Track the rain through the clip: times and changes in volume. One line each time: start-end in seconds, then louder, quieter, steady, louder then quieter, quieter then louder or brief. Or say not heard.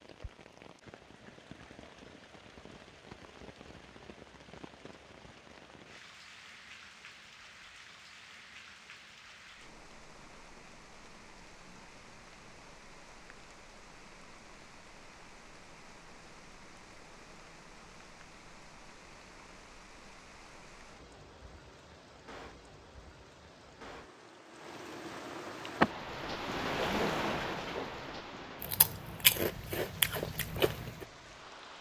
0.0-31.7 louder.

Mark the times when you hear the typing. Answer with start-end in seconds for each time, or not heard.
not heard.